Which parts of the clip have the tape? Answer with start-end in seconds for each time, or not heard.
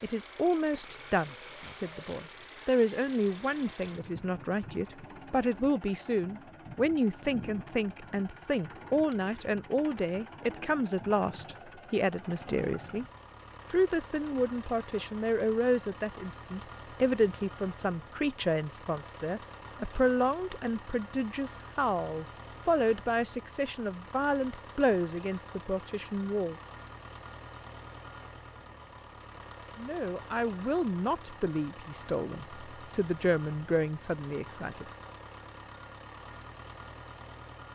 1.6-2.2.